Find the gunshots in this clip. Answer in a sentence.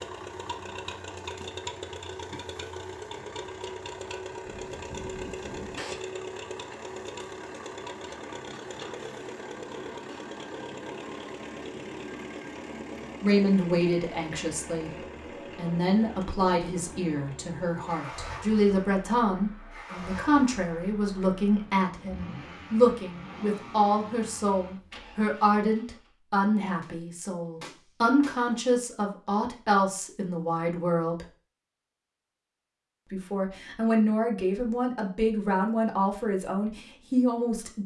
The gunshots can be heard from 4.3 to 6.0 s and from 26.8 to 28.5 s.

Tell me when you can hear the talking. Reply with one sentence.
You can hear the talking from 13.2 to 31.2 s and from 33.1 to 37.8 s.